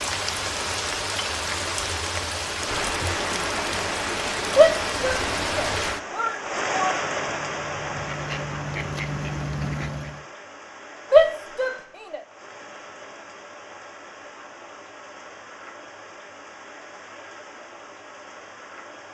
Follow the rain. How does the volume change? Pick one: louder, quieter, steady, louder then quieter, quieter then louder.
quieter.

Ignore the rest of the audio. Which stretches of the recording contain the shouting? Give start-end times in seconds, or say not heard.
4.5-7.0, 11.1-12.2.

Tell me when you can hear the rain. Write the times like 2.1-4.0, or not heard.
0.0-19.1.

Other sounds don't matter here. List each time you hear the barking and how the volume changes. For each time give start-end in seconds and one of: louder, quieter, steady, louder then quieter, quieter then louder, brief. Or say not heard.
not heard.